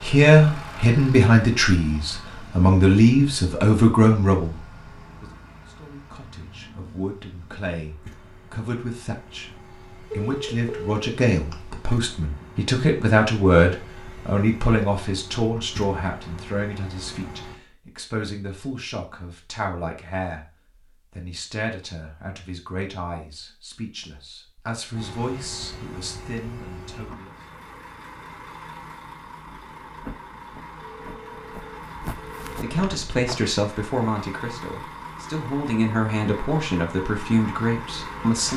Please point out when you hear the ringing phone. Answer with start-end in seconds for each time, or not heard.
10.1-11.9, 30.9-32.5.